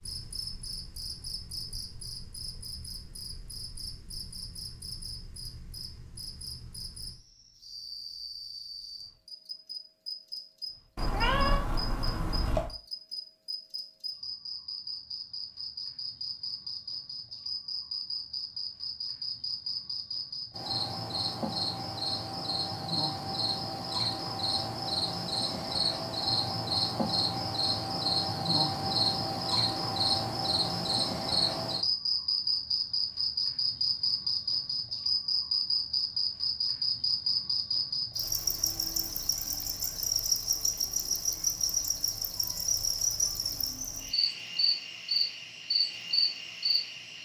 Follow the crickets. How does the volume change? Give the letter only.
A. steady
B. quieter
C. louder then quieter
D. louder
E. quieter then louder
D.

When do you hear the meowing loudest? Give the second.
11 s.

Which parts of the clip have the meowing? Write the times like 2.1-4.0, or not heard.
10.9-12.7.